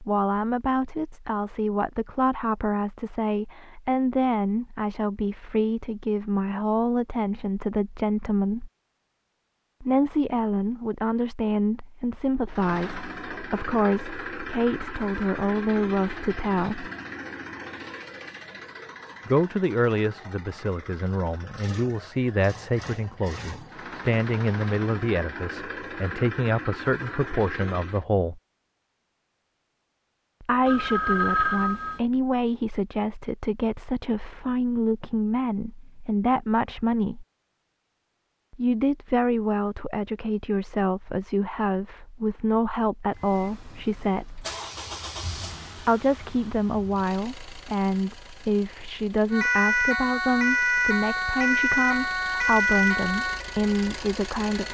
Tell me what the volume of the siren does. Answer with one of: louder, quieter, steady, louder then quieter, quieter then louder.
quieter.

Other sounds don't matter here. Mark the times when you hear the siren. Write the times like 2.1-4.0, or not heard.
49.3-54.6.